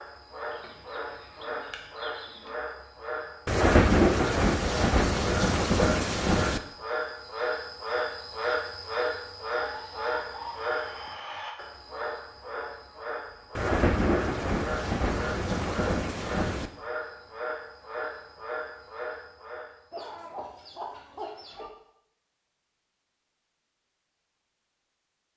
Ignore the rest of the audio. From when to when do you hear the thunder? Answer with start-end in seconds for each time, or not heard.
3.5-6.6, 13.6-16.7.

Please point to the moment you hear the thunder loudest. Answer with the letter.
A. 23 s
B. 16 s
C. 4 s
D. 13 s
C.